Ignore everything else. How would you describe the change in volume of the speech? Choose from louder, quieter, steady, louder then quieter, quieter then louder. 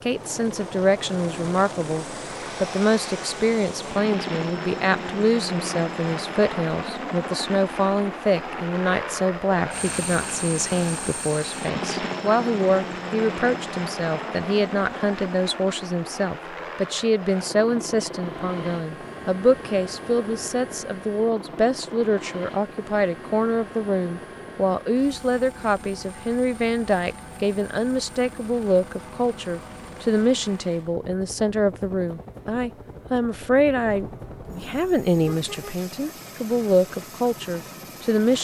steady.